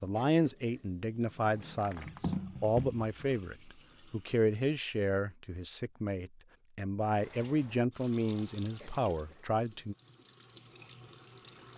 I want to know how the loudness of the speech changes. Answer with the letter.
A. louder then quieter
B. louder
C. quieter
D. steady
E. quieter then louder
D.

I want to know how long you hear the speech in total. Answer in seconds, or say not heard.
10 s.